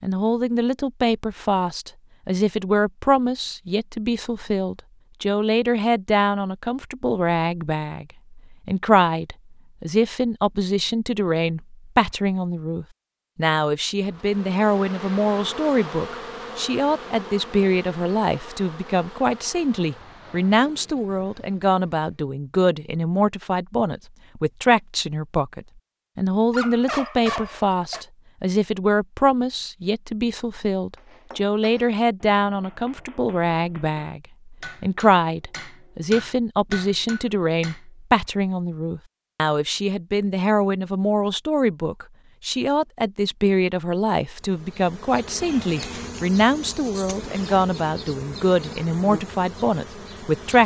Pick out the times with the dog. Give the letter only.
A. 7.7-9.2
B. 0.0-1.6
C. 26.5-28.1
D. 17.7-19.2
C.